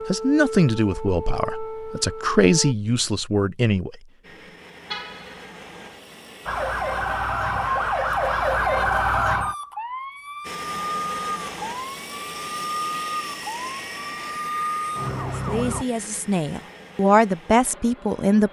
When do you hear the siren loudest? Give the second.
9 s.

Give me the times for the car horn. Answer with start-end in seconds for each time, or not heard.
4.9-5.5.